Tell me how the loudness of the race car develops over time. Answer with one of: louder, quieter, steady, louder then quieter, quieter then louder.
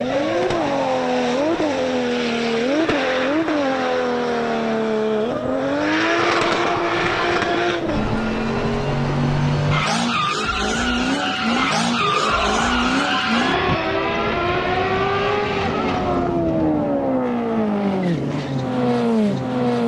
steady.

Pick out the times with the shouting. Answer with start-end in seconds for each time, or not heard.
6.2-7.7, 12.0-14.0.